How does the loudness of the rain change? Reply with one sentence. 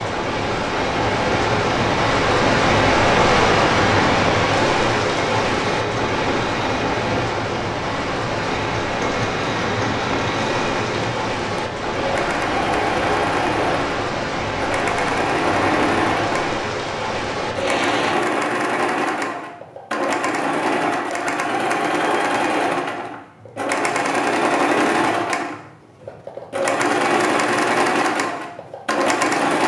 The loudness of the rain goes down.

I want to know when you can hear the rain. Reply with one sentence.
You can hear the rain from 0.0 to 18.1 s.